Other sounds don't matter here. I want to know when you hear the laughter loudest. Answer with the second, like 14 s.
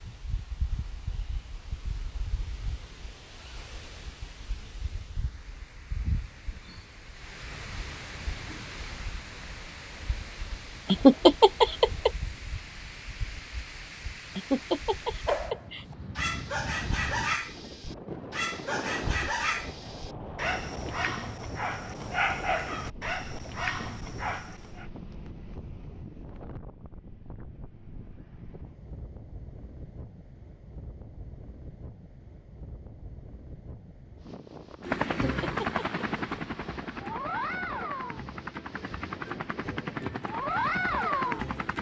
11 s.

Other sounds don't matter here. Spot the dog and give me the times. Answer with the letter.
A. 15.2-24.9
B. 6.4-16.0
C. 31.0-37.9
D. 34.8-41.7
A.